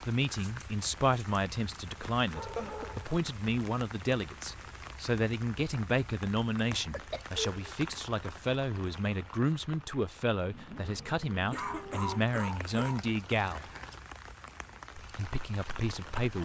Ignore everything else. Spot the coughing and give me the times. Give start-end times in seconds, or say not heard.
2.4-2.9, 6.7-7.8, 11.5-13.1.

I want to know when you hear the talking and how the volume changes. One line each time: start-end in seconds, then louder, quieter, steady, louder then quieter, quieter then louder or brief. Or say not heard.
0.1-13.7 steady
14.9-16.4 brief.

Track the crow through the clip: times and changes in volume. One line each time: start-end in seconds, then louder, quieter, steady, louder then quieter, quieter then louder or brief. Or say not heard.
not heard.